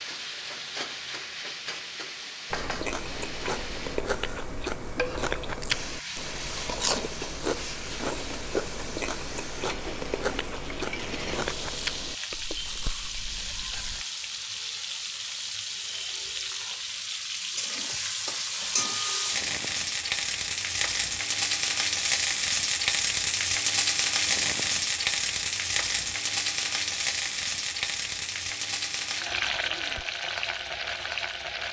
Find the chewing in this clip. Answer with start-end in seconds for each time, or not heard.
2.5-14.1.